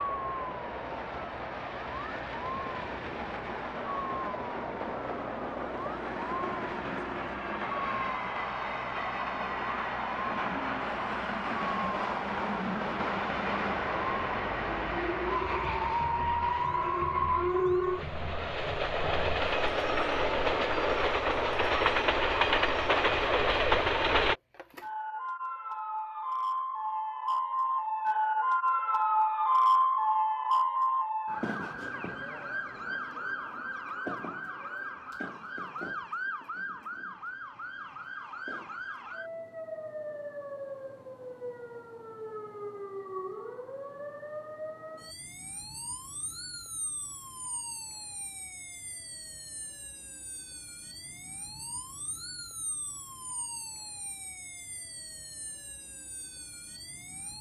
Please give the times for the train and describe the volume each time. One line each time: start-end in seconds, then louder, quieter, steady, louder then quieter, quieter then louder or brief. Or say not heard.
0.0-24.4 louder.